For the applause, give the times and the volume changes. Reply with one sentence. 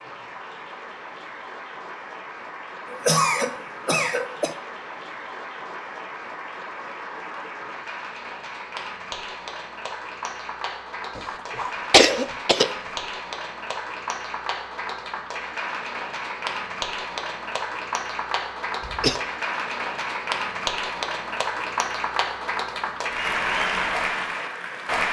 You can hear the applause from 0.0 to 25.0 s, getting louder.